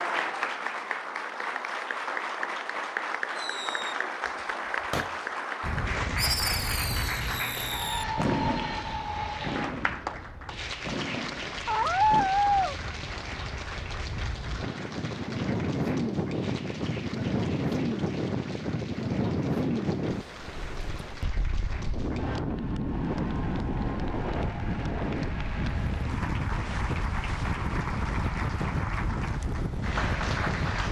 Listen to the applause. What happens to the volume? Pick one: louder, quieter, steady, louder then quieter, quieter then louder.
quieter then louder.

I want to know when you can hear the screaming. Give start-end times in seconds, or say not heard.
11.7-12.8.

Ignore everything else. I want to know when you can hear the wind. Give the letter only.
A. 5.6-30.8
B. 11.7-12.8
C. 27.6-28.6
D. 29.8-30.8
A.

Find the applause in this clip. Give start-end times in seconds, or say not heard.
0.0-30.8.